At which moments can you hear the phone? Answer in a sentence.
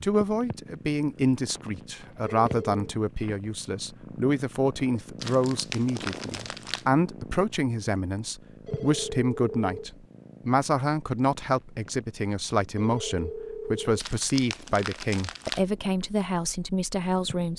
The phone can be heard from 2.2 to 2.9 s, from 8.7 to 9.9 s and from 12.8 to 14.0 s.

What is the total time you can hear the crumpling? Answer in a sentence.
The crumpling can be heard for 3 seconds in total.